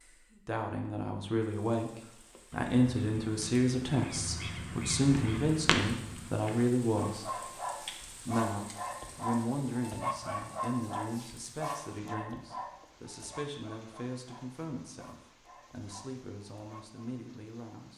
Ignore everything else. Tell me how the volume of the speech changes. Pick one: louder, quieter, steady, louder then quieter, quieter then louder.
quieter.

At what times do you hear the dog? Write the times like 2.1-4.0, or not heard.
7.0-17.1.